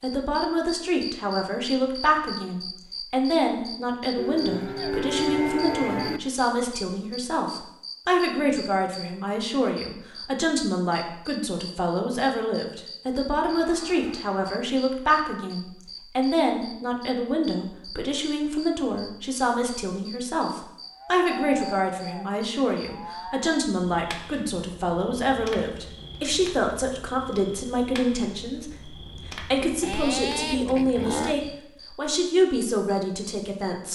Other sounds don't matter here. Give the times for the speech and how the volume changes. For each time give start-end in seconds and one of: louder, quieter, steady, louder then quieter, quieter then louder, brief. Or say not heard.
0.0-33.8 steady.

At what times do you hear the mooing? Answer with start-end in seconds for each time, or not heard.
4.2-6.2, 13.4-14.6, 20.9-23.6, 29.8-31.4.